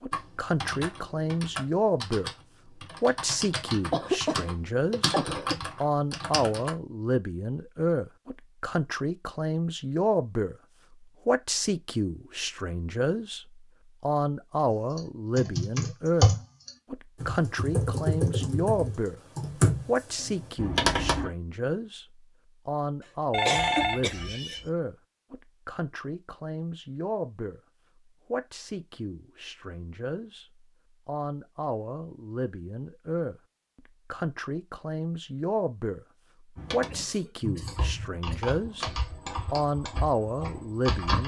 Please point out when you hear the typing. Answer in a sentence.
The typing can be heard from 0.1 to 6.7 s, from 14.9 to 21.3 s and from 36.5 to 41.2 s.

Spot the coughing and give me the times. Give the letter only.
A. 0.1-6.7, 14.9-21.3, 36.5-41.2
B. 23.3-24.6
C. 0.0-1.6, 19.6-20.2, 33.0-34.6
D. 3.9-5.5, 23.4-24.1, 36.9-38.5
D.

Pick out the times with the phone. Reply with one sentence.
You can hear the phone from 23.3 to 24.6 s.